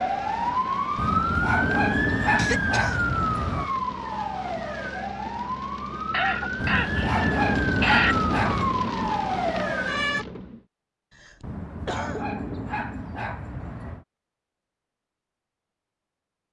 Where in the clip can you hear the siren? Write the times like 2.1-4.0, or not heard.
0.0-10.2.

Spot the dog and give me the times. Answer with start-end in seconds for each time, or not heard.
0.9-3.7, 6.6-8.8, 11.4-14.1.